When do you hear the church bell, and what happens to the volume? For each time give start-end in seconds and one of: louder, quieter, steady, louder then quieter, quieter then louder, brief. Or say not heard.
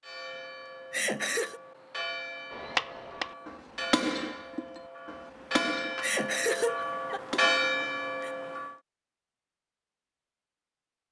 0.0-8.8 louder.